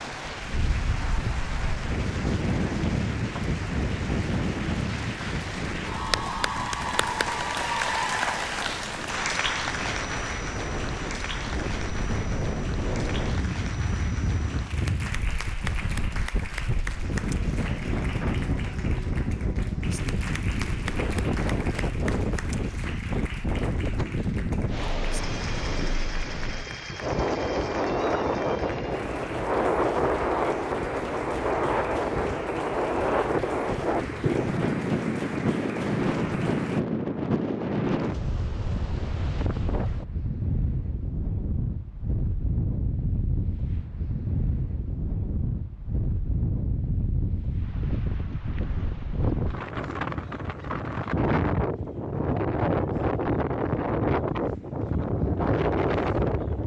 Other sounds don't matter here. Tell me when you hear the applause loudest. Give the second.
8 s.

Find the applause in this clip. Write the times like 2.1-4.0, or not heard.
0.0-36.8.